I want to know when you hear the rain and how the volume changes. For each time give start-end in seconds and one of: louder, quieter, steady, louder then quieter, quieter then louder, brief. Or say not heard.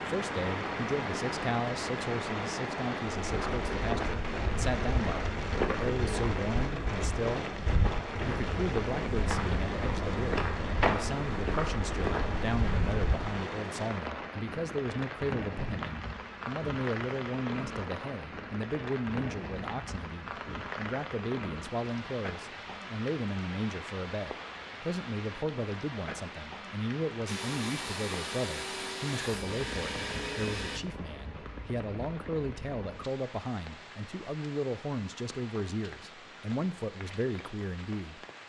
0.0-38.4 quieter.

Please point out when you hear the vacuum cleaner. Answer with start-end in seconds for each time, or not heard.
27.2-30.8.